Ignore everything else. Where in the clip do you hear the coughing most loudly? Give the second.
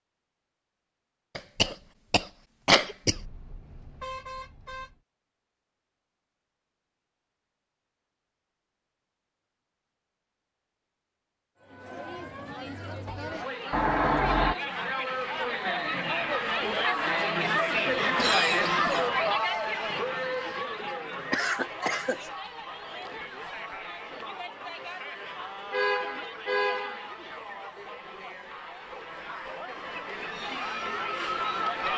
3 s.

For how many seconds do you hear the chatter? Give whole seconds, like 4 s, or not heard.
20 s.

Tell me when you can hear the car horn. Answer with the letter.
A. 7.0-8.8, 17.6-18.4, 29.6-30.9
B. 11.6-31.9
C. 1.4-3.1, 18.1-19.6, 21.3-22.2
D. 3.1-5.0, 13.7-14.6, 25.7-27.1
D.